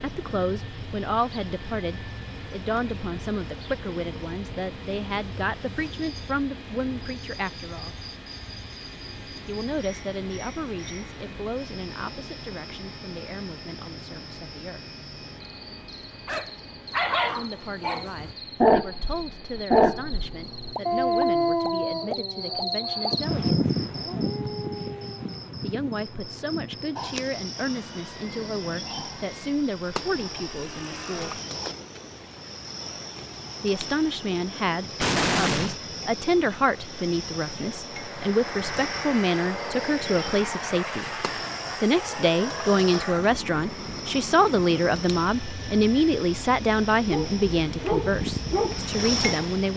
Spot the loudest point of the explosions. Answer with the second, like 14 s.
35 s.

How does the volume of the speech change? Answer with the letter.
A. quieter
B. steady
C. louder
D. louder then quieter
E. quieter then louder
E.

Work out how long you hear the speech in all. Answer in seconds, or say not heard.
42 s.